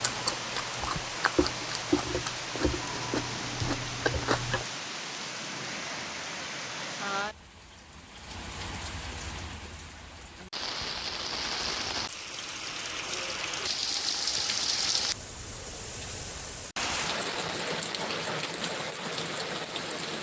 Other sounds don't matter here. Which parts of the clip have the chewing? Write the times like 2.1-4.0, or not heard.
0.0-4.7.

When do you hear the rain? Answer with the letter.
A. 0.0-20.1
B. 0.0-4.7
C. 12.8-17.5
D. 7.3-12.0
A.